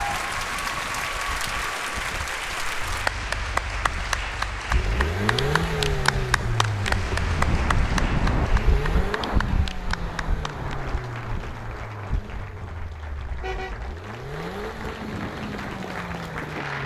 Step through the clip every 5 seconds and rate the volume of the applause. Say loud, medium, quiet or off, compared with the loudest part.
loud, loud, quiet, medium.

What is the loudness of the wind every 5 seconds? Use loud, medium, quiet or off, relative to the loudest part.
quiet, loud, medium, medium.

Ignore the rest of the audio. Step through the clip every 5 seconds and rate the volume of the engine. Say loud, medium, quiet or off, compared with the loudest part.
quiet, loud, medium, medium.